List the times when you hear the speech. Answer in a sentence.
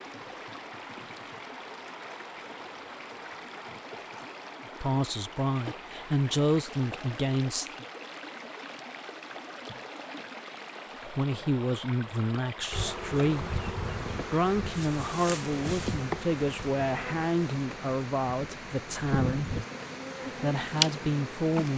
The speech can be heard from 4.8 to 7.8 s, from 11.0 to 13.7 s, from 14.3 to 19.6 s and from 20.4 to 21.7 s.